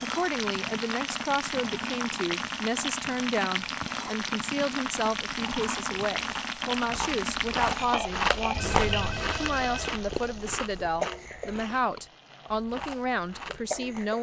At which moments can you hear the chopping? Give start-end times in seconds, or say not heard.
not heard.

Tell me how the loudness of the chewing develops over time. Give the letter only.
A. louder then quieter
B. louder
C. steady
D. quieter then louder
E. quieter
A.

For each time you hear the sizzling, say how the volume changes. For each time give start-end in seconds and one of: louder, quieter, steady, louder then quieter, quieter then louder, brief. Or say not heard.
0.0-14.1 quieter.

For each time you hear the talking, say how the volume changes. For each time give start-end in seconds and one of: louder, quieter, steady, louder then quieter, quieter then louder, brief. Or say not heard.
0.0-14.1 steady.